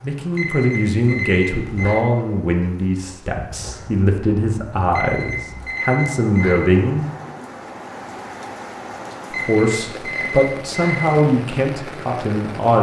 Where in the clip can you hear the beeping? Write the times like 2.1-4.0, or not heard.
0.3-2.0, 4.9-6.7, 9.3-11.2.